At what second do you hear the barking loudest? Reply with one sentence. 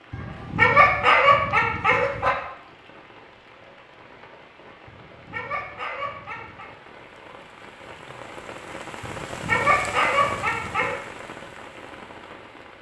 The loudest moment of the barking is at 1 second.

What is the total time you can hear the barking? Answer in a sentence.
You can hear the barking for 6 seconds altogether.